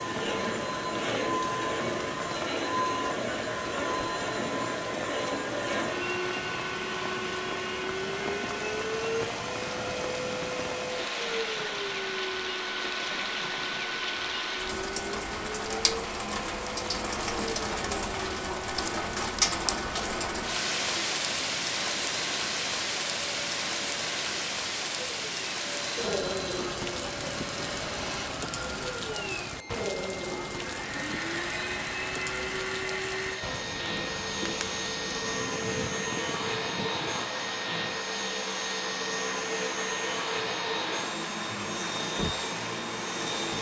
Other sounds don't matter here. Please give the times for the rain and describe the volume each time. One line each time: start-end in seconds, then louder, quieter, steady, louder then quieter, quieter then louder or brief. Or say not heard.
0.0-43.5 louder then quieter.